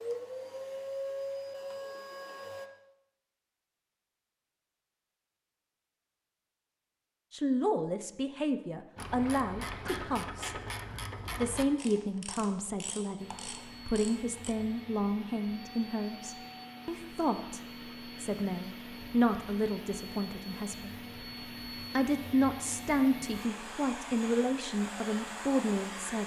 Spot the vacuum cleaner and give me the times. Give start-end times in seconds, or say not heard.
0.0-2.7, 13.2-26.2.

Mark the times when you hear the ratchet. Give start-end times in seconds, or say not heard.
8.9-14.6.